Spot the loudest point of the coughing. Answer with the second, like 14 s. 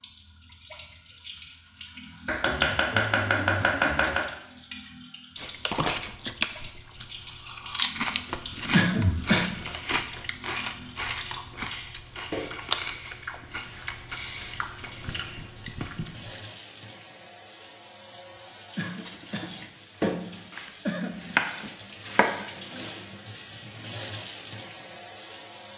9 s.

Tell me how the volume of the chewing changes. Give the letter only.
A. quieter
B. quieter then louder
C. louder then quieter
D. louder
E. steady
A.